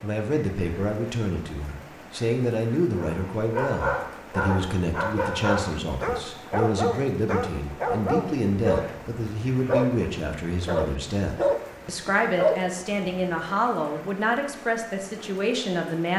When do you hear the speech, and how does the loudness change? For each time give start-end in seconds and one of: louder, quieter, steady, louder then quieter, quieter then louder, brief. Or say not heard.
0.0-16.1 steady.